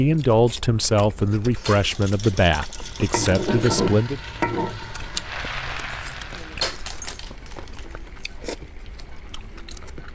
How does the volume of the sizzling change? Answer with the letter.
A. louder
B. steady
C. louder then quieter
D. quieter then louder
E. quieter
E.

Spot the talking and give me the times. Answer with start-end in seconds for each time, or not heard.
0.0-4.2.